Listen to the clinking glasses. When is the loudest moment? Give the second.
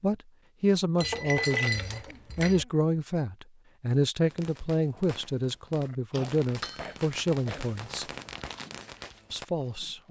2 s.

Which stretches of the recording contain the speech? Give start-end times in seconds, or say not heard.
0.0-8.1, 9.3-10.0.